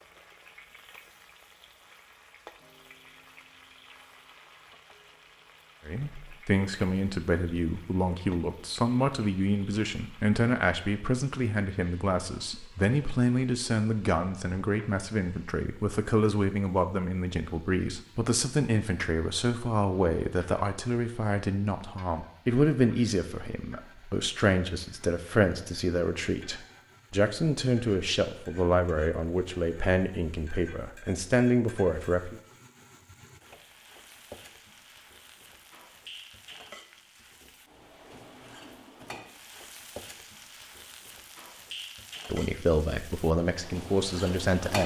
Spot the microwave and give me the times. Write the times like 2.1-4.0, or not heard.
not heard.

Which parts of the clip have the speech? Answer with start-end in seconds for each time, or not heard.
5.8-32.4, 42.2-44.8.